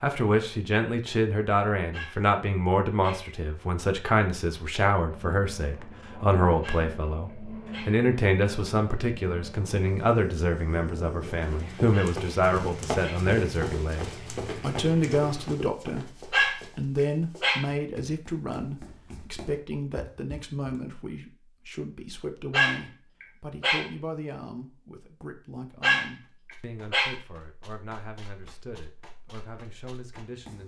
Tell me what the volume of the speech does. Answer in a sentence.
The loudness of the speech goes down.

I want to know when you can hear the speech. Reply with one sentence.
The speech can be heard from 0.0 to 30.6 s.